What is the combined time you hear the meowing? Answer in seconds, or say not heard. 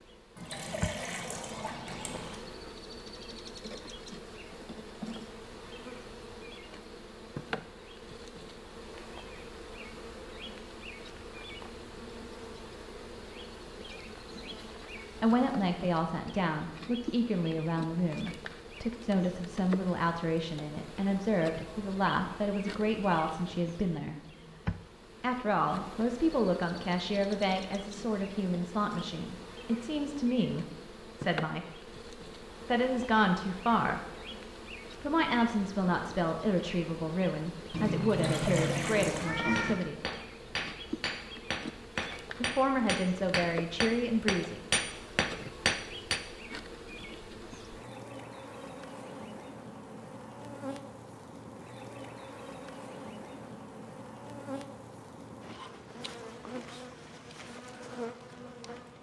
2 s.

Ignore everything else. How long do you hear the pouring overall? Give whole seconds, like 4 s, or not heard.
3 s.